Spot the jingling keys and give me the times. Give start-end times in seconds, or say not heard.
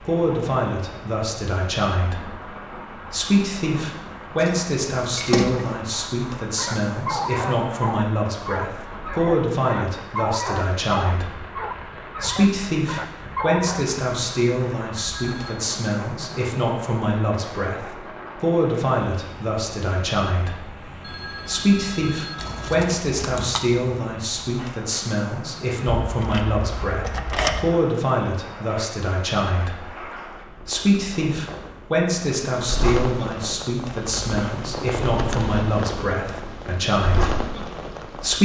4.4-5.8, 22.4-23.6, 26.0-27.8.